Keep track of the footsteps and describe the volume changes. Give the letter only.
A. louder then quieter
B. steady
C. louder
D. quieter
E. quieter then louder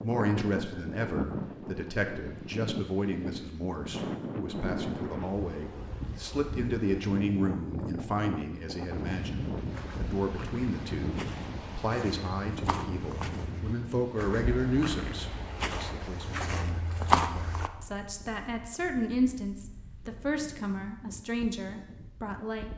C.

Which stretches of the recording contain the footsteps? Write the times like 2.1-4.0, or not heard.
9.7-17.7.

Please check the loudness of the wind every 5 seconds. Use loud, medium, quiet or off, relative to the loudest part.
loud, loud, loud, quiet, quiet.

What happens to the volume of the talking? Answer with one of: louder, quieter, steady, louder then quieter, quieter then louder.
steady.